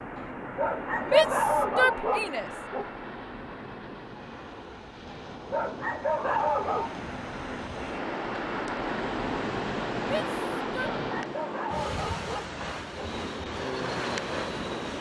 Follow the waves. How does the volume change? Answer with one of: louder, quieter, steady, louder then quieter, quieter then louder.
louder.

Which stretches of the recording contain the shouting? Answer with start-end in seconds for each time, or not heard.
1.1-2.5, 10.0-10.9.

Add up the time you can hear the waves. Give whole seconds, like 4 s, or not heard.
11 s.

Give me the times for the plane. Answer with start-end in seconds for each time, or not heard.
0.0-11.4, 12.8-14.9.